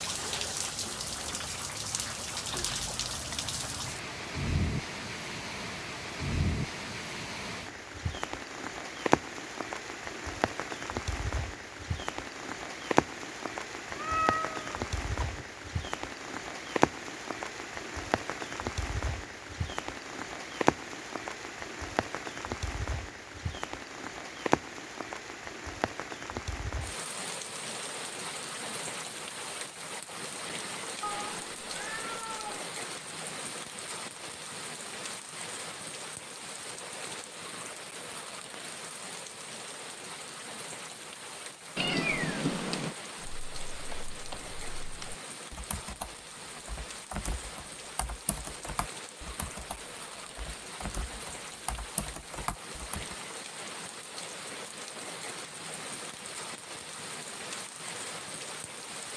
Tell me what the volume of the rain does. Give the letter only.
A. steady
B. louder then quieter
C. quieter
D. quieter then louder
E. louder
C.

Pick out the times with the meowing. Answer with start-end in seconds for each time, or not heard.
13.9-15.4, 31.0-32.6, 41.8-43.0.